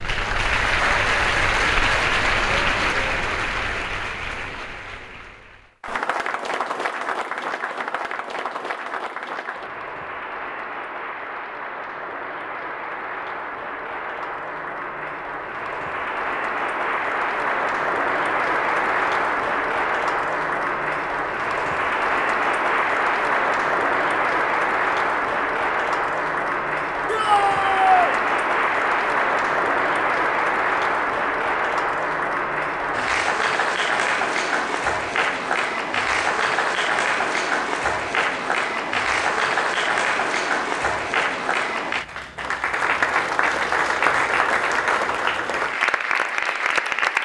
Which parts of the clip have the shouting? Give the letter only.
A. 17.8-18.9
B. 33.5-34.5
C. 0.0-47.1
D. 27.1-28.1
D.